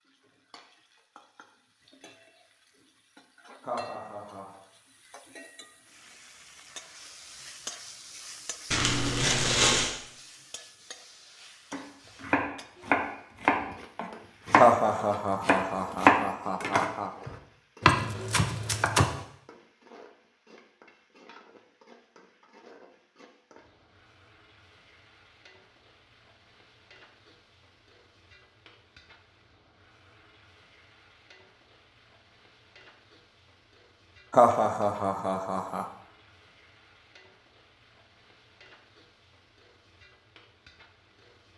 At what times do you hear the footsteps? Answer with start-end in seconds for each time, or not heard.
not heard.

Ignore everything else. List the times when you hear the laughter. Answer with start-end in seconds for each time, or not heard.
3.6-4.6, 14.6-17.1, 34.3-35.9.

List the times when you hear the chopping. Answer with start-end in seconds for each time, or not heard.
11.7-19.1.